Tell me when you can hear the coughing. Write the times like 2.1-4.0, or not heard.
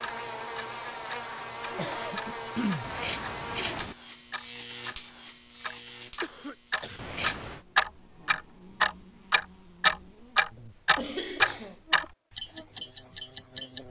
1.6-2.9, 6.2-7.0, 10.6-11.8.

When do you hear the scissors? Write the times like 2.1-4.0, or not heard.
2.8-4.0, 7.0-7.6.